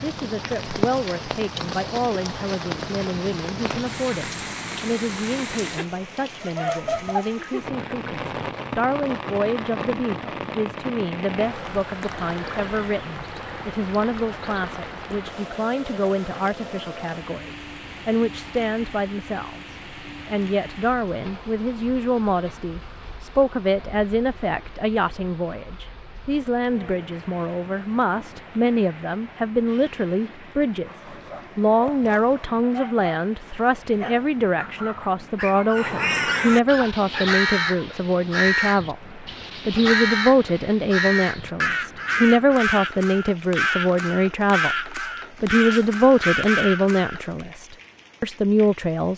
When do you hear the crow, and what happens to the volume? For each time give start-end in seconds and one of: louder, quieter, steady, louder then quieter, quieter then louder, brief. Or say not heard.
35.8-47.5 steady.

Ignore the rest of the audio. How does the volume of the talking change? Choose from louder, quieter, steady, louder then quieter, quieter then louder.
louder.